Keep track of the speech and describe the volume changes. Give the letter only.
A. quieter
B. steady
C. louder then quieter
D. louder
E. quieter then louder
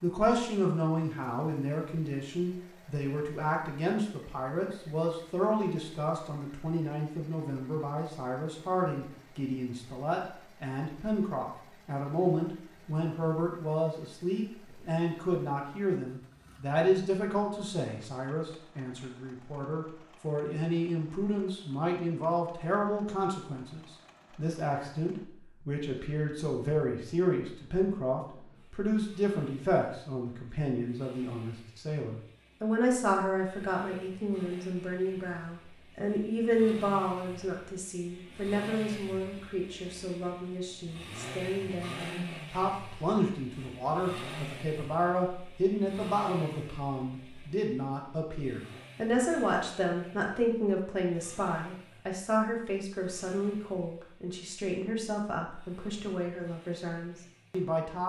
B.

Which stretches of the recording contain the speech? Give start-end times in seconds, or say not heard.
0.0-58.0.